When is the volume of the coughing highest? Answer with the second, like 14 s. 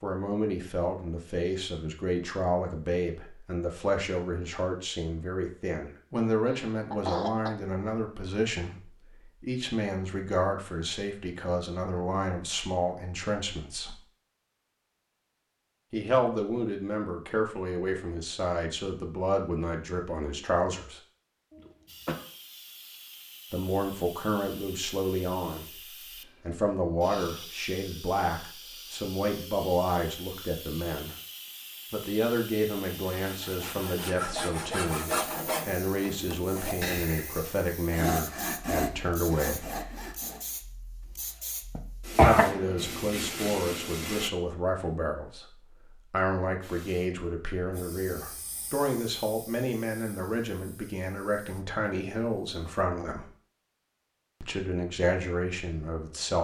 42 s.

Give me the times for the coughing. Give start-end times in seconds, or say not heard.
6.5-7.5, 21.5-22.2, 41.8-42.5.